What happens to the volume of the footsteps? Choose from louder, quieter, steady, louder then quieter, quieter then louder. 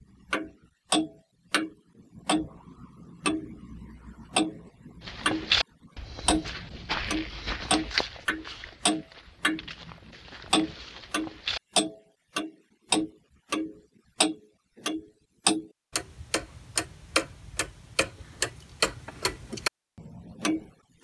quieter.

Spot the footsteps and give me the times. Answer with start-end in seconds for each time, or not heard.
5.0-11.6.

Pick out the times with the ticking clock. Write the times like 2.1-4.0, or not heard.
0.3-5.5, 6.2-20.9.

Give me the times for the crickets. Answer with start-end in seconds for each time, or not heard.
not heard.